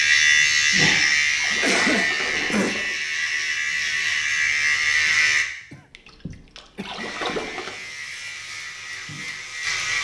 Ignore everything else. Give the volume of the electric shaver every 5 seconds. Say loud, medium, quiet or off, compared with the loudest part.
loud, medium.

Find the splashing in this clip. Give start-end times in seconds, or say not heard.
0.5-3.0, 5.9-7.8.